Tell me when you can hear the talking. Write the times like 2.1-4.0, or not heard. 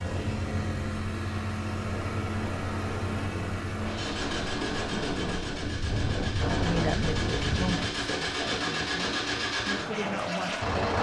6.6-10.7.